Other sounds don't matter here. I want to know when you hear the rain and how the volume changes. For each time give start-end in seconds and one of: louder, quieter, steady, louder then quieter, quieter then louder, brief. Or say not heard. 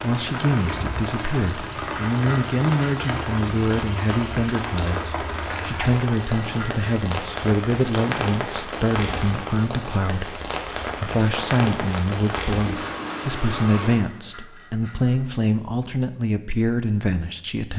0.0-14.0 steady.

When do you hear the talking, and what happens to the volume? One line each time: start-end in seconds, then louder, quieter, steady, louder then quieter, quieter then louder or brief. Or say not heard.
0.0-17.7 steady.